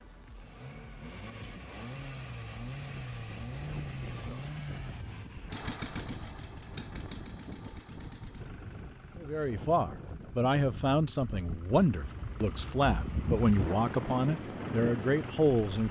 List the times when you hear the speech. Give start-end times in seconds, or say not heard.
9.2-15.8.